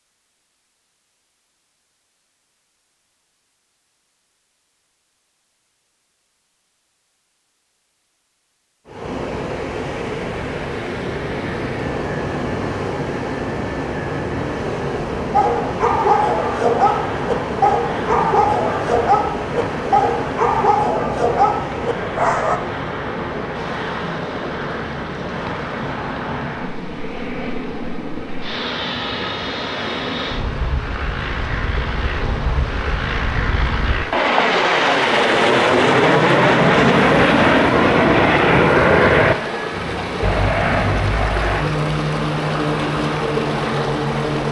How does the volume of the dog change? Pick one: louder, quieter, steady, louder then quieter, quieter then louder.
steady.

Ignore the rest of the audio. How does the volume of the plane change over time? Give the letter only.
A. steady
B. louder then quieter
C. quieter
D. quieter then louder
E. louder
E.